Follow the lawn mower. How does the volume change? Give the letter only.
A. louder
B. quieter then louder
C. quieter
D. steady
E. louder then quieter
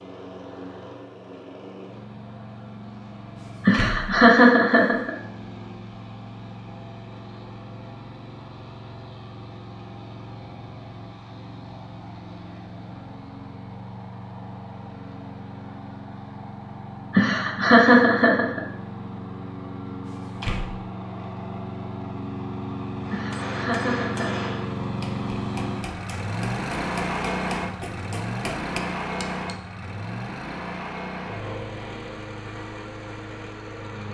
A.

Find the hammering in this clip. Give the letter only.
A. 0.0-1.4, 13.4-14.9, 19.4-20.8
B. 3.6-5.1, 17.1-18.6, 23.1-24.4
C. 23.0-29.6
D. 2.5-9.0
C.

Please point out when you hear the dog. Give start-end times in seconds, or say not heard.
not heard.